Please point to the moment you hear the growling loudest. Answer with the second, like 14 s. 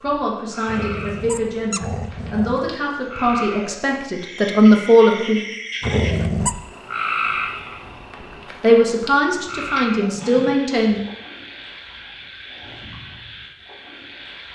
6 s.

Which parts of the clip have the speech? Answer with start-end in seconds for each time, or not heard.
0.0-5.4, 8.6-11.0.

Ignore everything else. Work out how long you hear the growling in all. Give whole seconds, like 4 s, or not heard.
4 s.